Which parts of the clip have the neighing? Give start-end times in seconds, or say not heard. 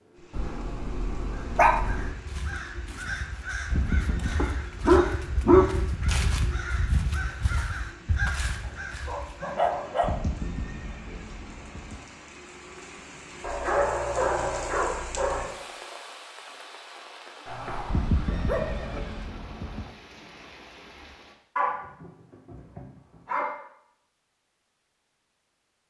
3.7-4.5, 10.0-12.1, 17.9-19.9.